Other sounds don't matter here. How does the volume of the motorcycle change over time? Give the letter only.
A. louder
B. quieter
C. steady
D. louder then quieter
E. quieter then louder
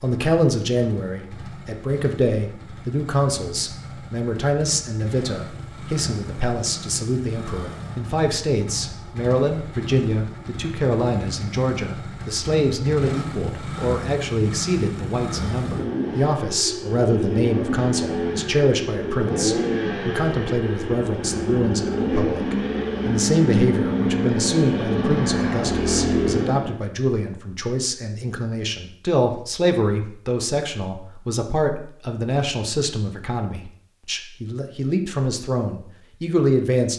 A.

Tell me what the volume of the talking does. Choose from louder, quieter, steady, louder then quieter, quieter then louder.
steady.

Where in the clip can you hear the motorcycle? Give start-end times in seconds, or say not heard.
0.0-26.8.